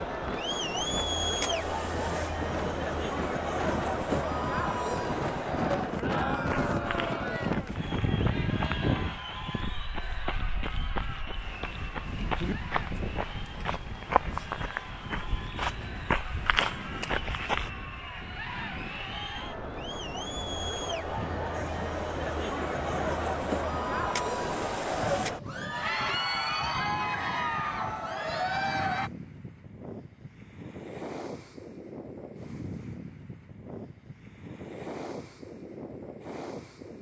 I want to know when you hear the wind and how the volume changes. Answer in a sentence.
You can hear the wind from 0.0 to 36.9 s, getting quieter.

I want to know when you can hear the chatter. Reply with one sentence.
The chatter can be heard from 0.0 to 29.1 s.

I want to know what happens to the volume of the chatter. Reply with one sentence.
The volume of the chatter goes down, then up.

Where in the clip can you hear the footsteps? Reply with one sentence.
You can hear the footsteps from 6.3 to 17.7 s.